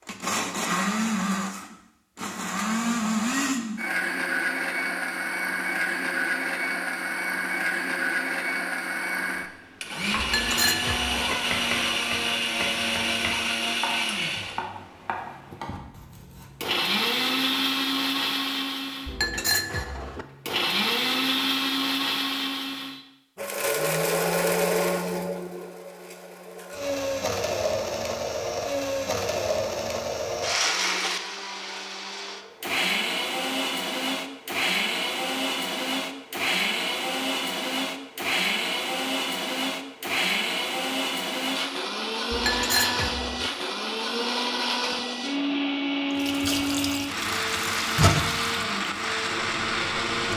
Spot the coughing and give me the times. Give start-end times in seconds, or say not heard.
not heard.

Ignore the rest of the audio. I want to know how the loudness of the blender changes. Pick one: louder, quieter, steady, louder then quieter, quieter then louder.
steady.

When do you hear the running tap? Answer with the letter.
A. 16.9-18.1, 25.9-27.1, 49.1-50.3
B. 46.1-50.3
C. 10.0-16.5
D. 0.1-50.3
B.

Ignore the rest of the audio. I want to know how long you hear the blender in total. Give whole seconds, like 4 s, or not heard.
50 s.